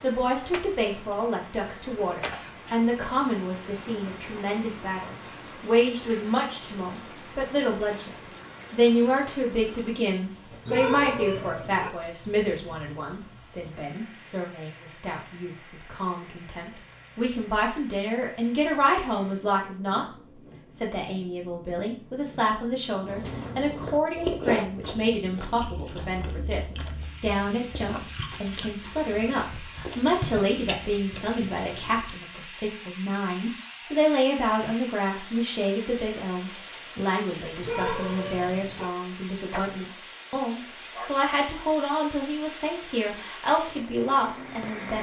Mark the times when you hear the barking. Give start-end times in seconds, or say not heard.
10.7-11.9, 37.6-38.9.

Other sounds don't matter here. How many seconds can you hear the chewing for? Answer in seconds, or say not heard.
9 s.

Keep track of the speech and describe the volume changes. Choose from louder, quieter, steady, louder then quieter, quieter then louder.
steady.